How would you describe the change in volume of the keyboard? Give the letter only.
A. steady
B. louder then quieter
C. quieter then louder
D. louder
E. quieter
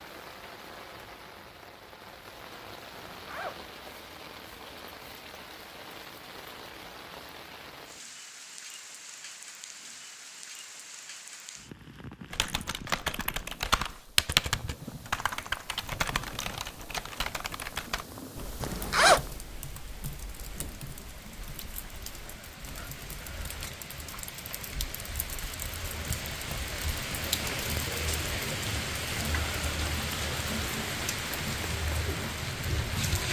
E.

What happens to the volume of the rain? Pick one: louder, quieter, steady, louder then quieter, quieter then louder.
louder.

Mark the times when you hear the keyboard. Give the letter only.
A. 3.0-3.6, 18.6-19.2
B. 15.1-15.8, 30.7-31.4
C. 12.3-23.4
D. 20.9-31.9
C.